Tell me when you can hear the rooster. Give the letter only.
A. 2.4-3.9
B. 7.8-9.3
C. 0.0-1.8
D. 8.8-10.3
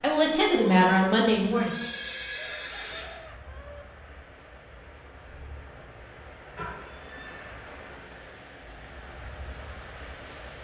A.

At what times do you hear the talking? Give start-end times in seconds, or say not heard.
0.0-1.8.